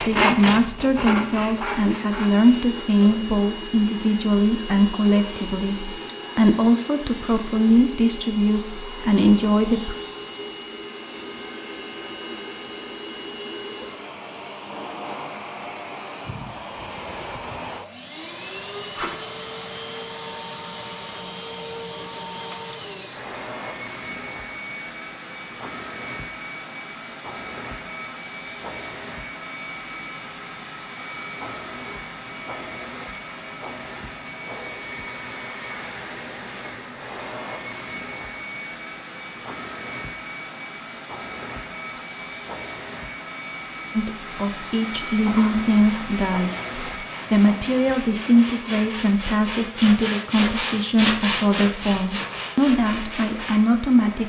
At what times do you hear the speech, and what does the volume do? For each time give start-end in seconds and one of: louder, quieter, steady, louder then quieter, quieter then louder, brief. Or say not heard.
0.0-9.9 steady
44.0-54.2 steady.